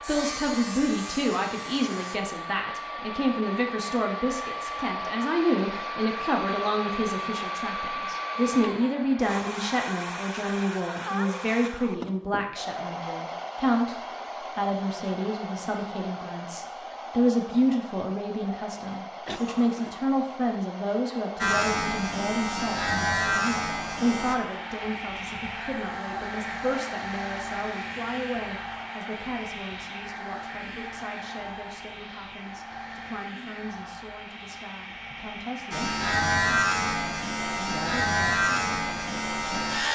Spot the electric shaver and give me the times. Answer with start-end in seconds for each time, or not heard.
0.0-2.1, 21.4-24.4, 35.7-39.9.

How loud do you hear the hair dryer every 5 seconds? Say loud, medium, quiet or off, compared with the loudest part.
loud, loud, loud, medium, medium, loud, medium, medium.